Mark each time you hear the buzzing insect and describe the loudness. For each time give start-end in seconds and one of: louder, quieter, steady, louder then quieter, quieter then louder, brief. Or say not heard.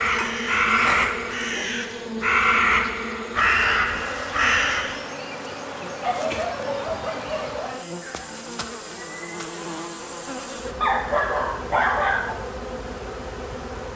0.0-13.9 steady.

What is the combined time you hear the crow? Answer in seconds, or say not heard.
5 s.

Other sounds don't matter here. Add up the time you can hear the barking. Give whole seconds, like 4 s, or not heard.
5 s.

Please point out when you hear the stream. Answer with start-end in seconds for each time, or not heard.
not heard.